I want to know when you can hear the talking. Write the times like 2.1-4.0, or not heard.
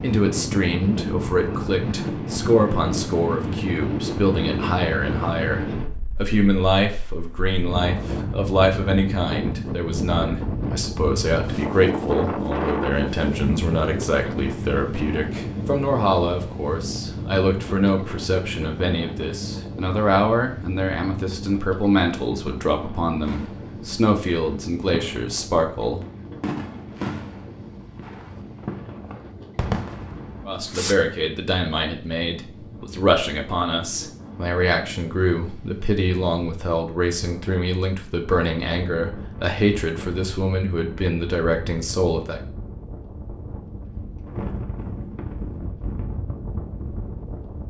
0.0-26.0, 30.4-42.4.